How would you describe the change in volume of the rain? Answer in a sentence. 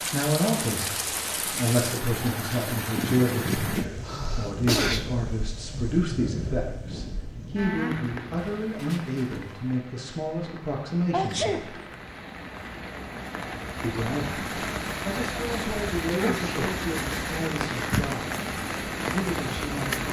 The volume of the rain goes down, then up.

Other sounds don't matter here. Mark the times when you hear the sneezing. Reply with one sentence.
The sneezing can be heard from 4.0 to 5.2 s, from 11.1 to 11.8 s and from 16.1 to 16.8 s.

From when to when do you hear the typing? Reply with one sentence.
The typing can't be heard in this clip.